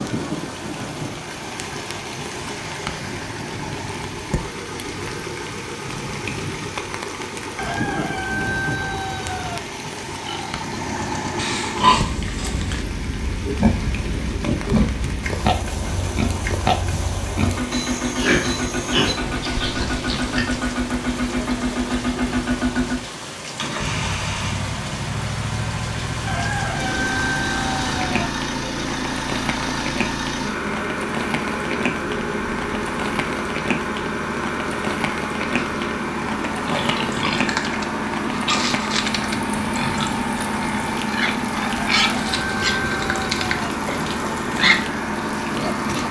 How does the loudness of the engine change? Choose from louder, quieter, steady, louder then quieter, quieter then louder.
louder.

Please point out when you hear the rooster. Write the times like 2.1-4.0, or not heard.
7.5-9.6, 26.2-28.3, 41.7-43.7.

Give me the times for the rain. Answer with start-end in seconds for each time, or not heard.
0.0-46.0.